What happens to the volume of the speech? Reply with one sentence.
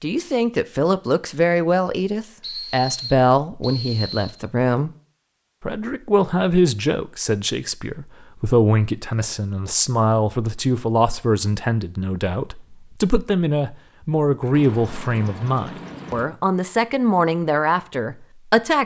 The volume of the speech stays about the same.